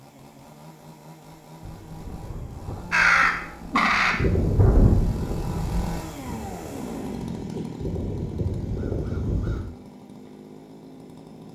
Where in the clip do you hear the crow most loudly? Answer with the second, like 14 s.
3 s.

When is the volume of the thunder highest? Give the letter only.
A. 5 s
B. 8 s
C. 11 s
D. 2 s
A.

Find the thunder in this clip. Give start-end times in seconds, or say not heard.
1.6-6.0.